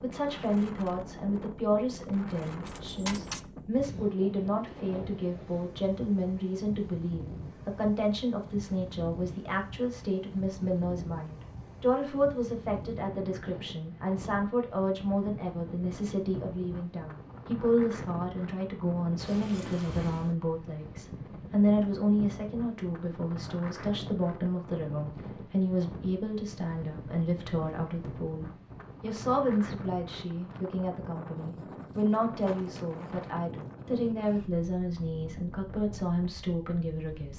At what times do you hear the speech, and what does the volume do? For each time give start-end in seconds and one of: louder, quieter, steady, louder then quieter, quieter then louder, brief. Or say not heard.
0.0-37.3 steady.